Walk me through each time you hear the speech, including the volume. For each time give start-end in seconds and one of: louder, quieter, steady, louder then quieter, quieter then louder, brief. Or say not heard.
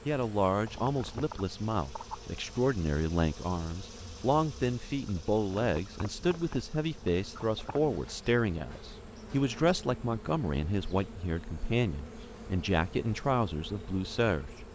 0.1-14.5 steady.